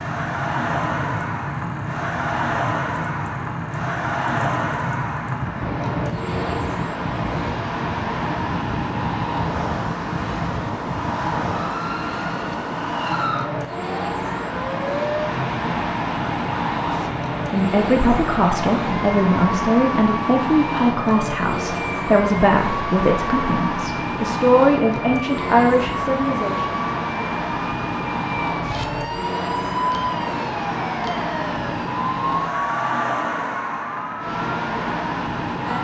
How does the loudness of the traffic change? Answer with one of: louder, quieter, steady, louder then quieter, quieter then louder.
steady.